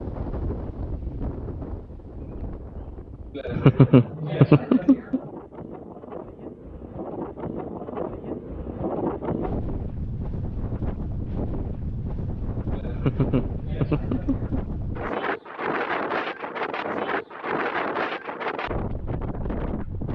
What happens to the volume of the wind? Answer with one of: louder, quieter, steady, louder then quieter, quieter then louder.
louder.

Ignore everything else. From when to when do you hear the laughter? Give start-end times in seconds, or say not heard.
3.4-5.2, 12.8-14.6.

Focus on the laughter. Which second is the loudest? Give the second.
4 s.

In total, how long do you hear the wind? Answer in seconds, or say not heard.
20 s.